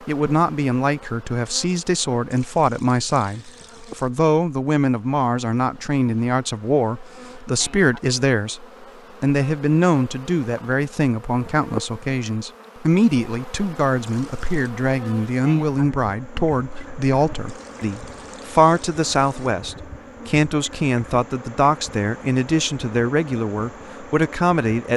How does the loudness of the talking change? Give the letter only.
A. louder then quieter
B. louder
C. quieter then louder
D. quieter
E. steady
E.